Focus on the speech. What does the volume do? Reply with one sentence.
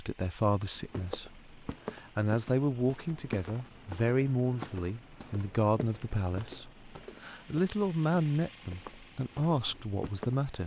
The loudness of the speech stays about the same.